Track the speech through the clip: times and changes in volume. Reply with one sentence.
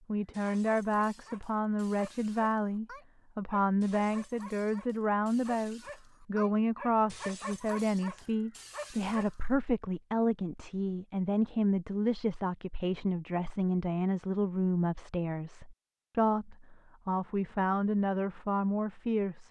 You can hear the speech from 0.1 to 19.4 s, at a steady volume.